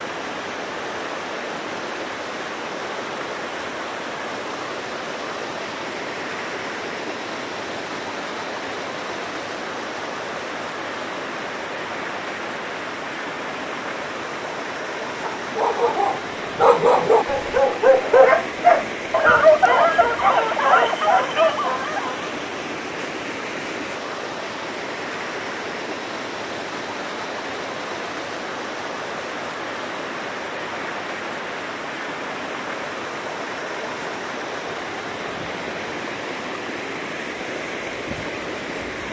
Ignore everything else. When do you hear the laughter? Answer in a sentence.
The laughter can't be heard in this clip.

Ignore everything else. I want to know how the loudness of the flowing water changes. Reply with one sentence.
The loudness of the flowing water stays about the same.